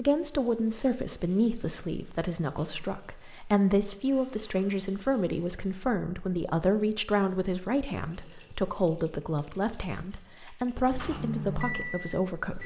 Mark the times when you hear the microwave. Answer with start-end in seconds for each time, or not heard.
10.9-12.6.